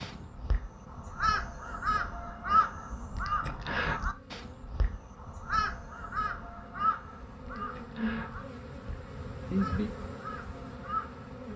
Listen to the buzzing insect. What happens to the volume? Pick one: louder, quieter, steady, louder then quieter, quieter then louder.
louder.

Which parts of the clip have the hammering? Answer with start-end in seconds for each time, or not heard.
not heard.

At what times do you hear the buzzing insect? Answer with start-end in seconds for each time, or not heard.
0.0-11.5.